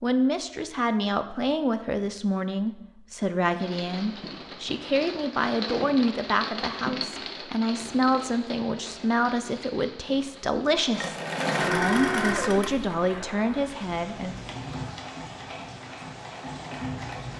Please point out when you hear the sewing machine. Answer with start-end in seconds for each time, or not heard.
10.9-17.3.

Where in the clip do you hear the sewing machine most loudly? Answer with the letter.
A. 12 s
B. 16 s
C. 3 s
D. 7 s
A.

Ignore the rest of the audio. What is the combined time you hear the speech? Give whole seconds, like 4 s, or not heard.
14 s.